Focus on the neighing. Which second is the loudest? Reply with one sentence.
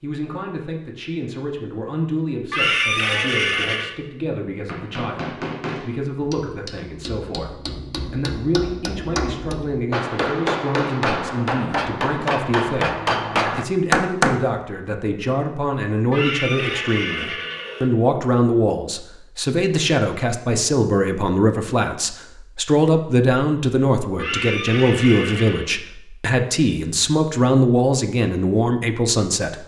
The loudest moment of the neighing is at 3 seconds.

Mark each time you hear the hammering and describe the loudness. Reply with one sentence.
You can hear the hammering from 4.7 to 14.4 s, getting louder.